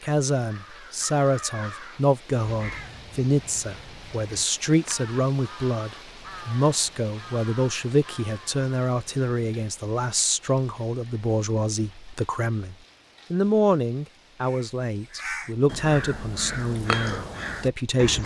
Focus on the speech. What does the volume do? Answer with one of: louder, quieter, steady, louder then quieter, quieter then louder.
steady.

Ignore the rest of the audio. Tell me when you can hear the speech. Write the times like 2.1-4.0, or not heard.
0.0-18.2.